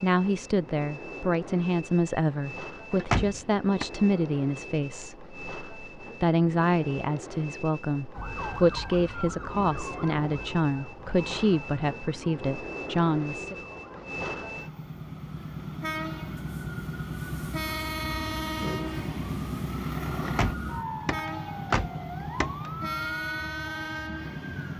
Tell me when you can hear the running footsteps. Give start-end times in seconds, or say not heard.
not heard.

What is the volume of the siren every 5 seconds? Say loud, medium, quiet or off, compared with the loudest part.
off, loud, medium, loud, loud.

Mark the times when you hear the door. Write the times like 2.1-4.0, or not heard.
2.9-3.9, 20.2-22.7.